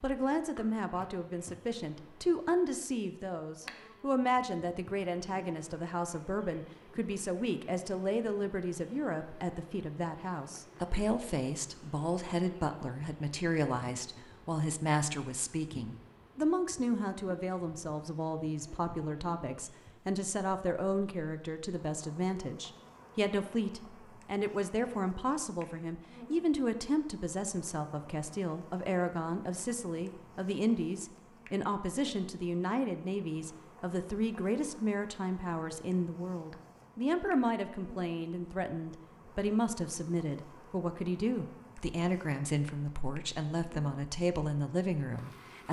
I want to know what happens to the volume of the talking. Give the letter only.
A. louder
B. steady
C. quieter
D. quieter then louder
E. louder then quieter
B.